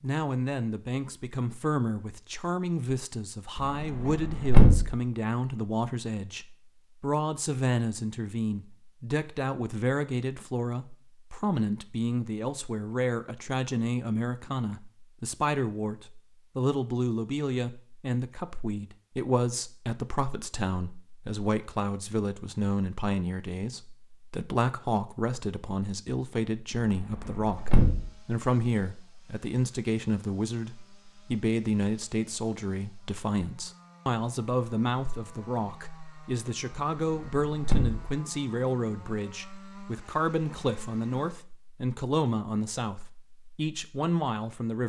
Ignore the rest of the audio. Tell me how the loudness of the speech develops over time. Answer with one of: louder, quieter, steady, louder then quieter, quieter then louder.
steady.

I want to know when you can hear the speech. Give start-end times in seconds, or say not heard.
0.0-44.8.